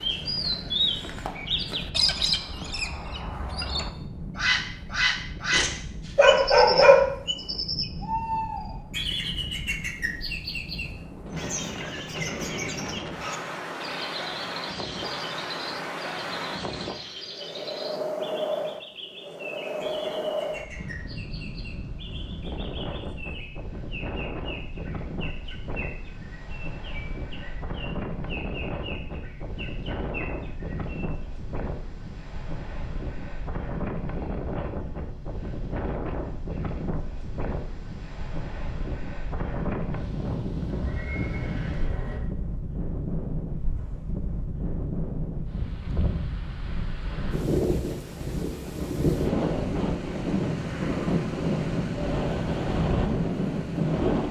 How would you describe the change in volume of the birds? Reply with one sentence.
The volume of the birds goes down.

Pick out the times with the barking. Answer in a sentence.
The barking can be heard from 5.5 to 7.0 s.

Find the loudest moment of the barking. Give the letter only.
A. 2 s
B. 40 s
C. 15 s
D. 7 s
D.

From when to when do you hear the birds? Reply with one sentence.
The birds can be heard from 0.0 to 31.2 s.